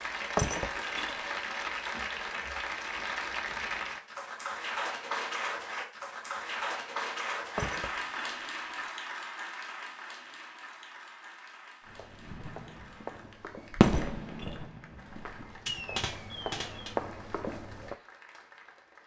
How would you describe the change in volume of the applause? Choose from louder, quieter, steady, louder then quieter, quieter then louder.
quieter.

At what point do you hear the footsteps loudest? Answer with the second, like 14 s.
17 s.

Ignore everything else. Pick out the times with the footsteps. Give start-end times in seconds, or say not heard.
11.8-18.0.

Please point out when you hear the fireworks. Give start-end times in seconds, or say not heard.
12.2-16.9.